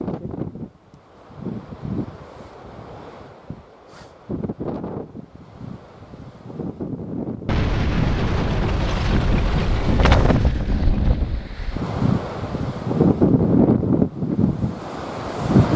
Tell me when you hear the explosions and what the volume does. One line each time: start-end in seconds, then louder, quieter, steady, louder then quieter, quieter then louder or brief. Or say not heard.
7.5-11.5 quieter.